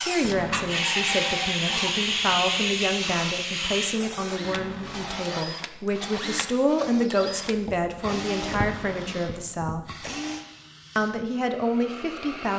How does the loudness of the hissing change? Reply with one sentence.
The volume of the hissing goes down.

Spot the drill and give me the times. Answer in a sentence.
The drill can be heard from 0.0 to 10.4 s.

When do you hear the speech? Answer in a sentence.
You can hear the speech from 0.0 to 10.1 s and from 10.9 to 12.5 s.